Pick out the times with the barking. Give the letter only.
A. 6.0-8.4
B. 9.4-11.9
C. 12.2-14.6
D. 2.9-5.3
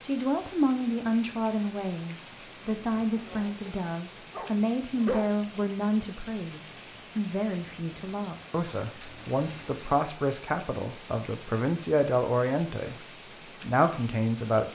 D.